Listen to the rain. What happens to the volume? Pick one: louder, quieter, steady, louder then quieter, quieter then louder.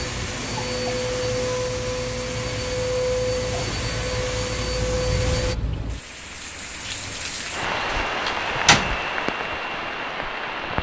louder.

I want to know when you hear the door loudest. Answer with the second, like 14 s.
9 s.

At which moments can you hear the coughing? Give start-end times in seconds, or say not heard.
not heard.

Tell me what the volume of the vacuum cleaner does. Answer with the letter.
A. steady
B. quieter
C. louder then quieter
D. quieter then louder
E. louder
A.